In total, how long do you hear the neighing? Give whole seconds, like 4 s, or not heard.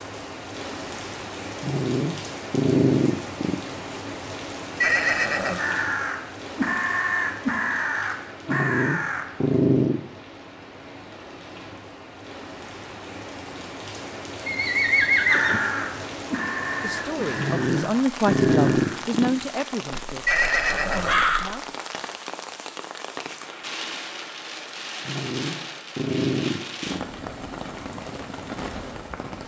3 s.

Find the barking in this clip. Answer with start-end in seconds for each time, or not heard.
1.6-3.6, 8.4-10.0, 17.4-19.3, 25.1-27.0.